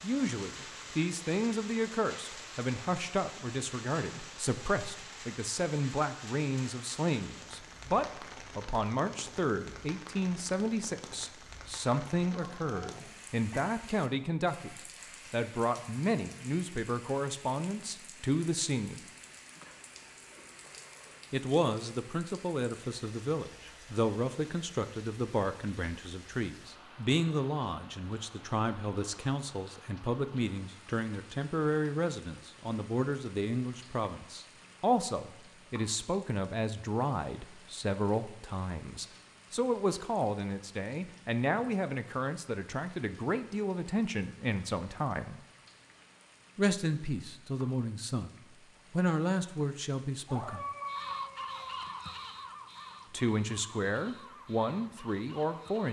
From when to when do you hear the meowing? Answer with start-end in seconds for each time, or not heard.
12.3-13.7, 19.6-21.2, 50.2-51.8.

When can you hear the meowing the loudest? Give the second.
51 s.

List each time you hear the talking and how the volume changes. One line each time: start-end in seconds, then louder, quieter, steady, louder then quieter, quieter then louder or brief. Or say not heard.
0.0-19.0 steady
21.3-45.4 steady
46.5-48.3 brief
48.9-50.6 brief
53.1-55.8 brief.